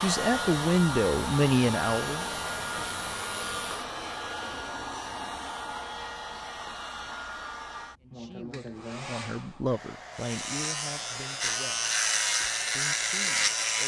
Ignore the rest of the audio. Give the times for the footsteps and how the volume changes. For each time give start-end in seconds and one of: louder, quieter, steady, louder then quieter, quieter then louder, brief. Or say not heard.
not heard.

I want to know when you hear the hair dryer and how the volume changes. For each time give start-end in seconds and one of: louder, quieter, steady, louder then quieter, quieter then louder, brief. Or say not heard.
0.0-13.8 quieter.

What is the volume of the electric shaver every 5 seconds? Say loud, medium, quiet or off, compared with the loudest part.
quiet, off, loud.